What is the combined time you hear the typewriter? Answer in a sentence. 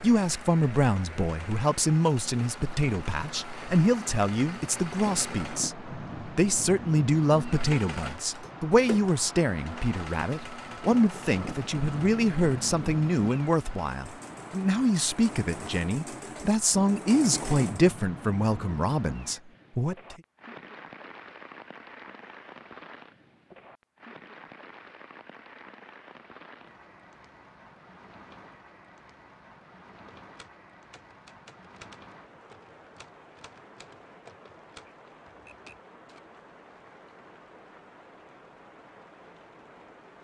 The typewriter can be heard for 6 seconds in total.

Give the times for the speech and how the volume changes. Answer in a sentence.
The speech can be heard from 0.0 to 20.1 s, at a steady volume.